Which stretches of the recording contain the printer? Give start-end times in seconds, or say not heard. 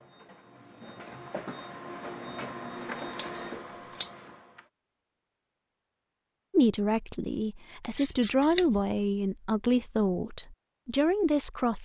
0.0-4.7.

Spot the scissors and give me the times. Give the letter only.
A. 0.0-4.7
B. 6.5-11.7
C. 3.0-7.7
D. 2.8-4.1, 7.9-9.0
D.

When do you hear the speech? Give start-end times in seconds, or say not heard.
6.5-11.7.